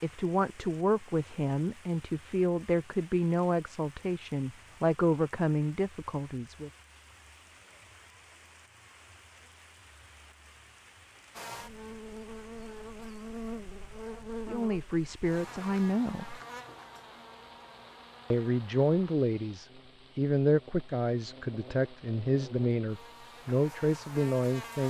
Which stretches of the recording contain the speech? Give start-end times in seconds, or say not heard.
0.0-6.7, 14.4-16.4, 18.3-24.8.